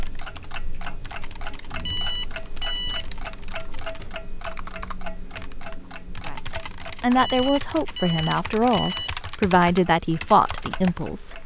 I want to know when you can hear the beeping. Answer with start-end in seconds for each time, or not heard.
1.8-3.0, 7.2-9.1.